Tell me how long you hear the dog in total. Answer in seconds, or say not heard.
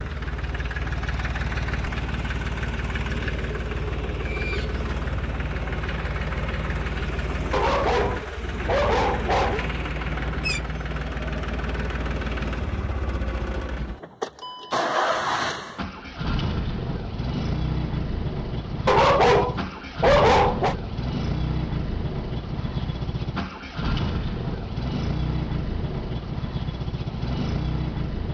4 s.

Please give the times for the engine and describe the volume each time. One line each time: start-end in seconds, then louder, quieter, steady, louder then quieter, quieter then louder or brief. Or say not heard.
0.0-28.2 steady.